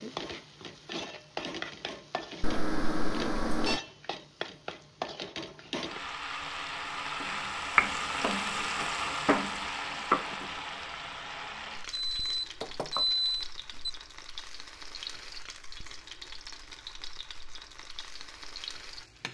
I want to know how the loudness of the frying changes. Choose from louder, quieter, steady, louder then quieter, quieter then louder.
louder then quieter.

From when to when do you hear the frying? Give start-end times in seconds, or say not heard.
0.0-19.2.